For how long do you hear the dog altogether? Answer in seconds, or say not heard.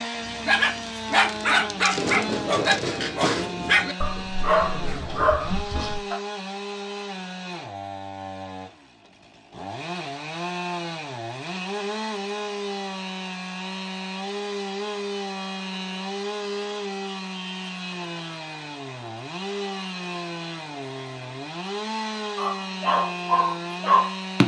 8 s.